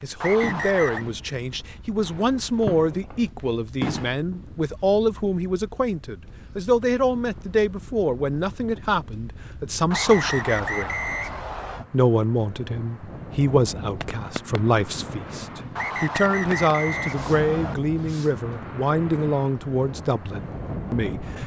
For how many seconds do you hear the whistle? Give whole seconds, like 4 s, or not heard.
5 s.